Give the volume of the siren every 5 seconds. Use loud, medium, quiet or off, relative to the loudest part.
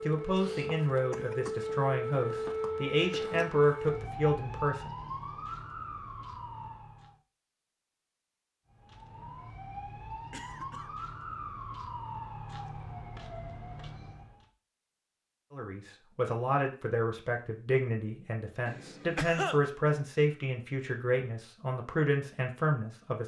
loud, medium, medium, off, off.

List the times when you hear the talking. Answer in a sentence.
The talking can be heard from 0.0 to 4.9 s and from 15.5 to 23.2 s.